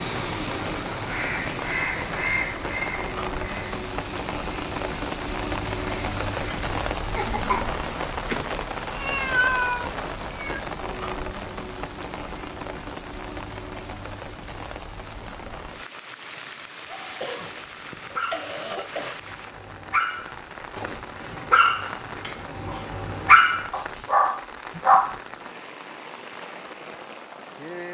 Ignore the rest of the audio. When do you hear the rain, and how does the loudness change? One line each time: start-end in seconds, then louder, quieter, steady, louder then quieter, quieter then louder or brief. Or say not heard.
0.0-27.8 quieter.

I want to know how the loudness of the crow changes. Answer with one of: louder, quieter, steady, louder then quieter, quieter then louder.
quieter.